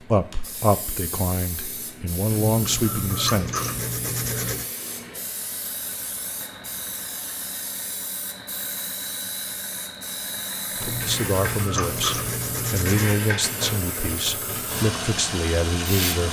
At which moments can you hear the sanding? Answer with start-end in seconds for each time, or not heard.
2.3-4.7, 10.8-13.2.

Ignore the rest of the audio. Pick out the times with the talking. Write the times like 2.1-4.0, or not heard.
0.1-3.5, 10.8-16.2.